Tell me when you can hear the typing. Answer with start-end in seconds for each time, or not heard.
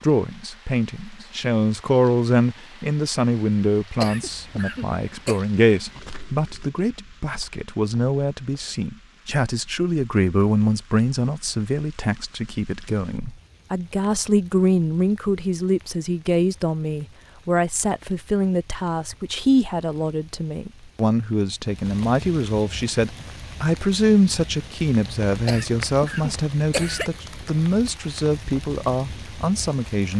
not heard.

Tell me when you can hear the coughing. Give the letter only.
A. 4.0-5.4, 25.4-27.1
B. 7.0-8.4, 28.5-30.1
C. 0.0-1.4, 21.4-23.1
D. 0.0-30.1
A.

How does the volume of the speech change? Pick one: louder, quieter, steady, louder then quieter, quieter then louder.
steady.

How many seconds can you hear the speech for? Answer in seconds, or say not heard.
30 s.